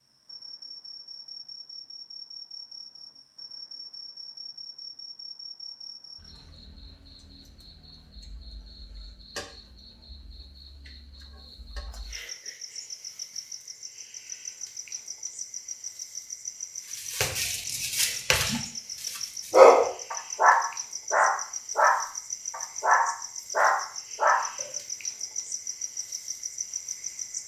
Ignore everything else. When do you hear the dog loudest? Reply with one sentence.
The volume of the dog peaks at 20 seconds.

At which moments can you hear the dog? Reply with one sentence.
The dog can be heard from 16.9 to 24.7 s.